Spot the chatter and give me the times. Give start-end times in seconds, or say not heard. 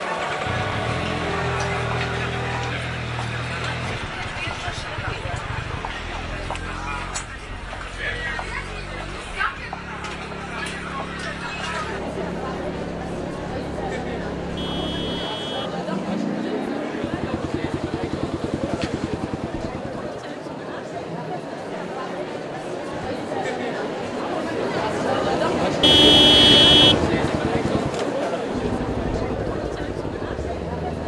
0.0-31.0.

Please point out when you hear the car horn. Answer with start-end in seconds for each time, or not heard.
1.2-2.8, 14.6-15.8, 25.8-27.3.